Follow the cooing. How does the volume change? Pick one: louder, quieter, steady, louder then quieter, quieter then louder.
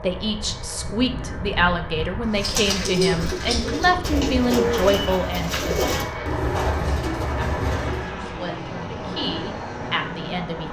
steady.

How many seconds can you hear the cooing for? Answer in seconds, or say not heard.
6 s.